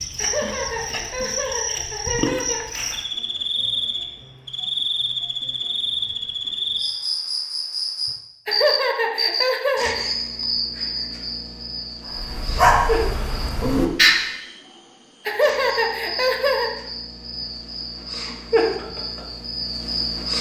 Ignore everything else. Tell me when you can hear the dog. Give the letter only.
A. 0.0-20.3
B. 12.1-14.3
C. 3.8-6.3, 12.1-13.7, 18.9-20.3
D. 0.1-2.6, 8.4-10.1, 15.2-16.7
B.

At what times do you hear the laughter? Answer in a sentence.
You can hear the laughter from 0.1 to 2.6 s, from 8.4 to 10.1 s and from 15.2 to 16.7 s.